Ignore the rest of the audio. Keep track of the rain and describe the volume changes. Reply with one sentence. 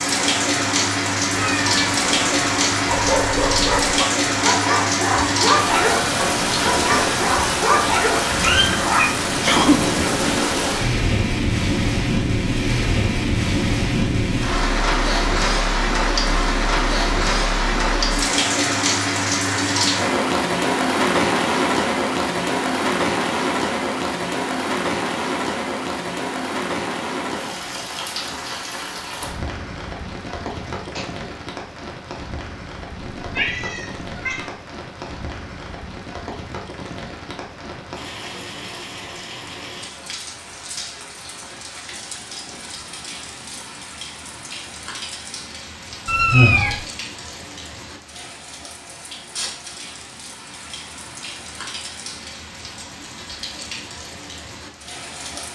The loudness of the rain goes down.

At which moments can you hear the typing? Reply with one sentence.
You can't hear the typing here.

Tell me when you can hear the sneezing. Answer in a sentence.
You can hear the sneezing from 9.3 to 9.8 s and from 30.6 to 31.3 s.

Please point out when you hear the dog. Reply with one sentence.
You can hear the dog from 2.9 to 9.1 s.